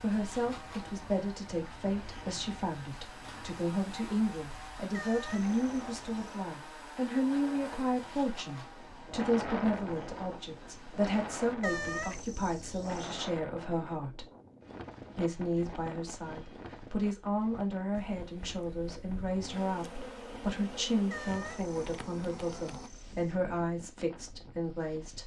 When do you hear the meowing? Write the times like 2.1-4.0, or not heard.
4.9-6.4, 11.6-13.2, 21.1-23.4.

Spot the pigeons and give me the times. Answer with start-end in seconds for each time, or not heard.
not heard.